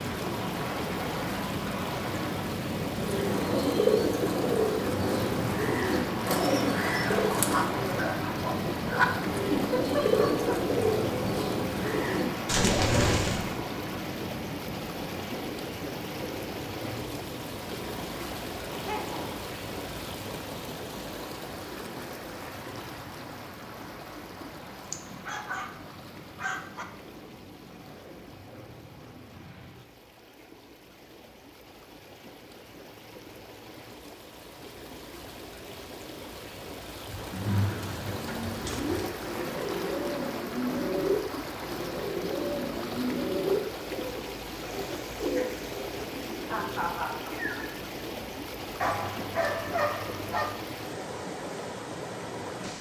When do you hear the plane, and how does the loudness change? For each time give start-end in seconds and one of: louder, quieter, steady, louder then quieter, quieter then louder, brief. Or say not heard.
0.0-29.9 quieter.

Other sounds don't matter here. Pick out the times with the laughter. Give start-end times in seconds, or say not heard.
9.6-10.6, 18.7-19.4, 46.5-47.6.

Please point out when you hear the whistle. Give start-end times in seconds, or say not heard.
not heard.